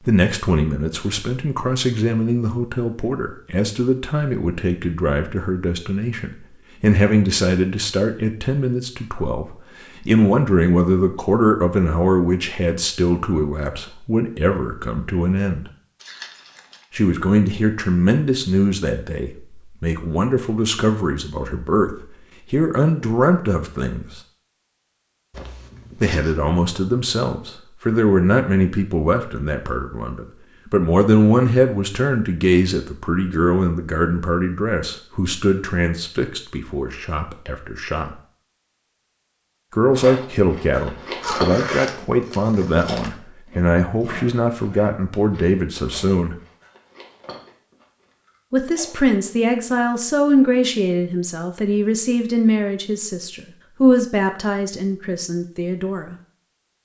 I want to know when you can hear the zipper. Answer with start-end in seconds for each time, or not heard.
16.0-16.9, 25.3-26.4, 41.2-43.1.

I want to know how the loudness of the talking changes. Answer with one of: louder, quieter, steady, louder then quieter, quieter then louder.
steady.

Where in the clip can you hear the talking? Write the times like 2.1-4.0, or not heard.
0.1-15.7, 16.9-24.2, 26.0-38.1, 39.7-46.4, 48.5-56.1.